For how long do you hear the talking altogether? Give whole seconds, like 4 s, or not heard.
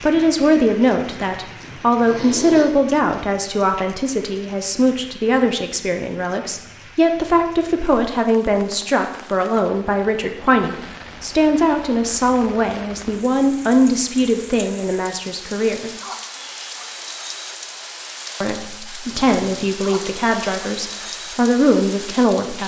20 s.